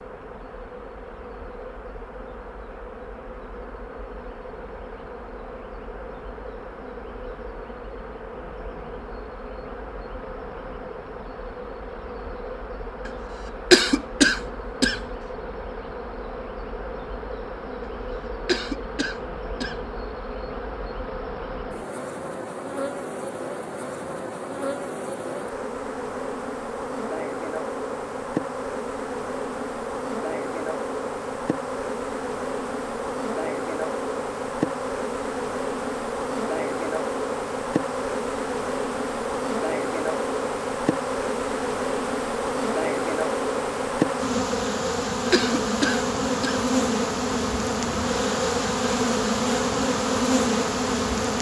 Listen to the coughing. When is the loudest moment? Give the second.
14 s.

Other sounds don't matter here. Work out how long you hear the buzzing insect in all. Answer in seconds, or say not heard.
51 s.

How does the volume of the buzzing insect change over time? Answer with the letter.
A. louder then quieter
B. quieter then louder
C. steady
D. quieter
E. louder
E.